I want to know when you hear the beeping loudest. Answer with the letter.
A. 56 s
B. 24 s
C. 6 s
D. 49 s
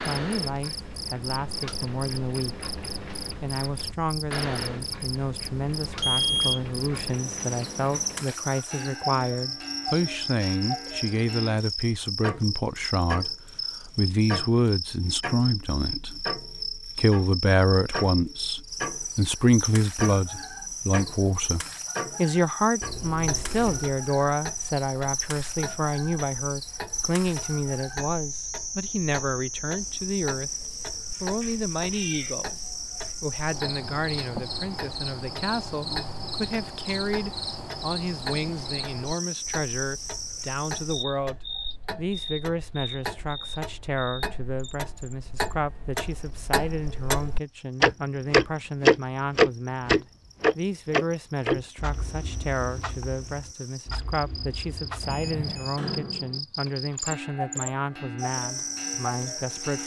C.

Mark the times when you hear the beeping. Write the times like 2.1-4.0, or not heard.
6.0-6.6, 22.8-23.9, 55.0-55.8.